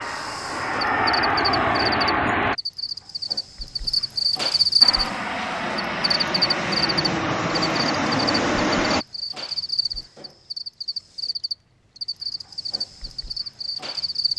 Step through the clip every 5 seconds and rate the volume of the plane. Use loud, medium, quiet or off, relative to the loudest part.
loud, loud, off.